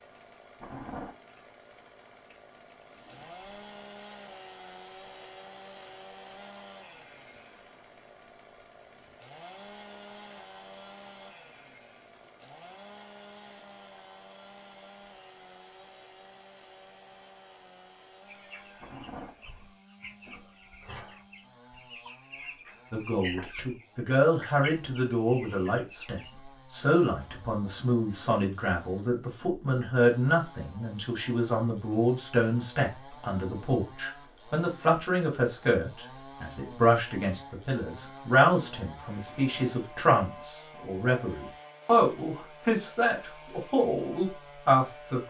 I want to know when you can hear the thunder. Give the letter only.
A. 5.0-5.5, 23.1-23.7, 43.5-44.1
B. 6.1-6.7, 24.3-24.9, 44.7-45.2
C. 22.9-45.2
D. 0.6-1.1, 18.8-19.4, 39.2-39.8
D.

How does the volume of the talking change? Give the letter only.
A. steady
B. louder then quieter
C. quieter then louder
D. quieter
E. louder
A.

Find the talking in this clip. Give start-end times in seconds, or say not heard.
22.9-45.2.